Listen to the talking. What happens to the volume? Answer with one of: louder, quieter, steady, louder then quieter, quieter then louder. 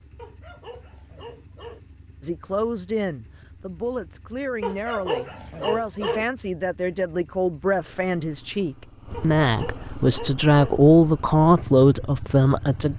louder.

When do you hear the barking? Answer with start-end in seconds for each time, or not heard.
0.1-1.8, 4.6-6.2, 9.1-10.8.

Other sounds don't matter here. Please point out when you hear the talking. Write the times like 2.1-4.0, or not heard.
2.2-12.9.